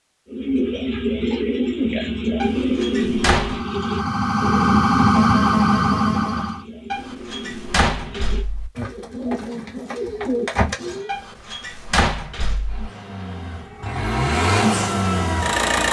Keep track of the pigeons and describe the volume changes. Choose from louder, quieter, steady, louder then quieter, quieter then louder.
quieter then louder.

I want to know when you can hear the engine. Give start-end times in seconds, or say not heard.
12.7-15.8.